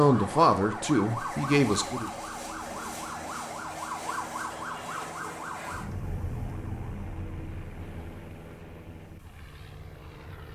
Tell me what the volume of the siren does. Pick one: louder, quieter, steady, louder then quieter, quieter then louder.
quieter.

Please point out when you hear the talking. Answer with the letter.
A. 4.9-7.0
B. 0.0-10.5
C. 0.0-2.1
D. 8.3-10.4
C.